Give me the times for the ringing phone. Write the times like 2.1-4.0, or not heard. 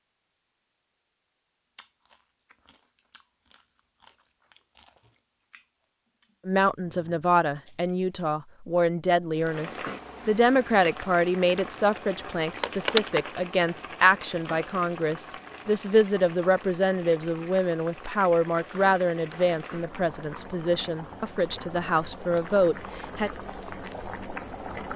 12.6-13.2.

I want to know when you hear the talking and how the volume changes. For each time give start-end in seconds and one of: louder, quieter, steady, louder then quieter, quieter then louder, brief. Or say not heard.
6.5-23.3 steady.